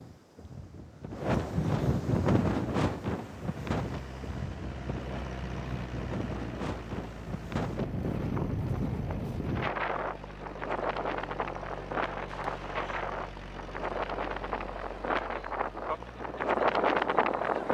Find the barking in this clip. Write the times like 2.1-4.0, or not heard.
not heard.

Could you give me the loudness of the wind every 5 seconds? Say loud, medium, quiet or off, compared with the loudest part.
loud, medium, medium, loud.